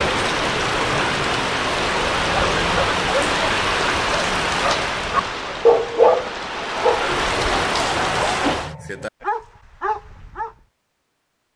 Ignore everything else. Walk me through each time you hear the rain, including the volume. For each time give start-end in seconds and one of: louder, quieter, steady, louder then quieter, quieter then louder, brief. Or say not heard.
0.0-8.8 quieter then louder.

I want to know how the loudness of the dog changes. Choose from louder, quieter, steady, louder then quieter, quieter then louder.
louder then quieter.